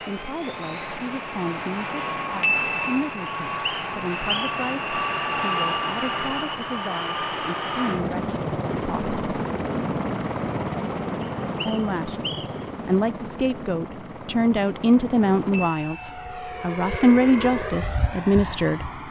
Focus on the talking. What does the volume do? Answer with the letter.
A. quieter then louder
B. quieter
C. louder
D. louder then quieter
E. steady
C.